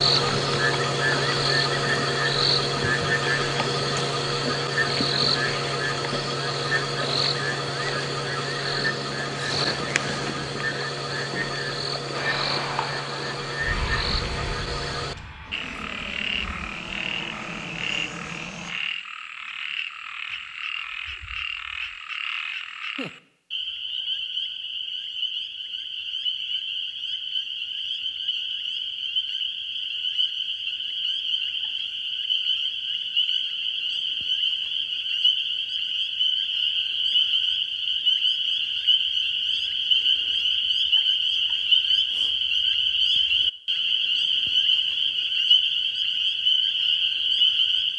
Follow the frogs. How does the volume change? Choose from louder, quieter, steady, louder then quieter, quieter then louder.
quieter then louder.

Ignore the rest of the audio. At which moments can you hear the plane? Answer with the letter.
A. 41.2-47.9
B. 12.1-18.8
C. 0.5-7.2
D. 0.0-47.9
B.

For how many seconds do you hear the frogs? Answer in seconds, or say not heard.
48 s.